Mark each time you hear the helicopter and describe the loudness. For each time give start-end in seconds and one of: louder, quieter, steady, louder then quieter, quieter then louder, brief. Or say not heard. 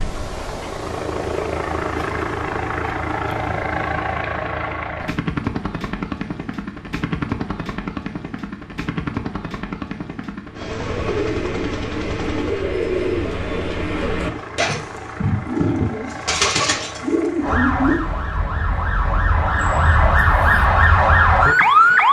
0.0-22.0 quieter.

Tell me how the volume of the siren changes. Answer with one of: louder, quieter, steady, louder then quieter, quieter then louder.
louder.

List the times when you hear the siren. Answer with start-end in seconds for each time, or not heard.
17.4-22.0.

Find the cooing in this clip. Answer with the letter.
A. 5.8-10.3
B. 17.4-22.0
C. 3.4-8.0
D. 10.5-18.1
D.